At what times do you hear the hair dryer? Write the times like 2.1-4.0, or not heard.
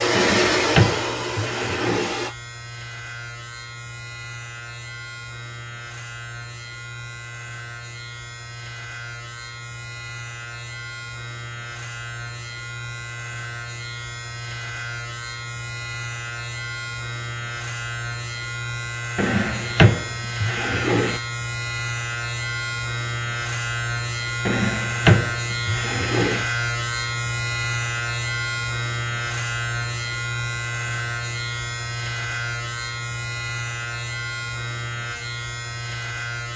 0.0-2.3.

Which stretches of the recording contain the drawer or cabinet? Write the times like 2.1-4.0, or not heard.
0.1-2.1, 19.1-21.2, 24.4-26.4.